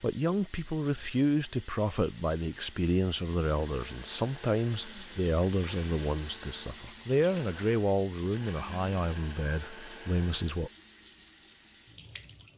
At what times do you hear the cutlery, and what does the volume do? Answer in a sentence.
The cutlery can't be heard in this clip.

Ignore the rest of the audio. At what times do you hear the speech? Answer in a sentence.
You can hear the speech from 0.0 to 10.7 s.